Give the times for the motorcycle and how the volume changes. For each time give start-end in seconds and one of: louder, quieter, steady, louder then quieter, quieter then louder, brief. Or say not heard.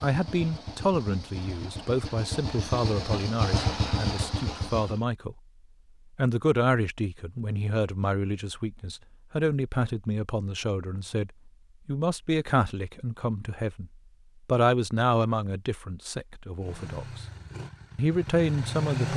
0.0-5.0 louder
16.6-19.1 brief.